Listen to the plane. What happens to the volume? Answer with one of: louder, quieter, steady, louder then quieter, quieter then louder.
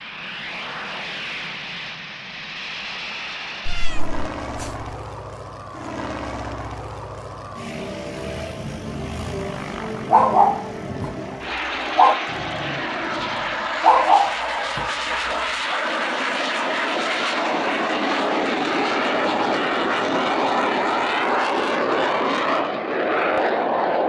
louder.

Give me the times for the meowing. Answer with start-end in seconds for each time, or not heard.
3.6-4.7.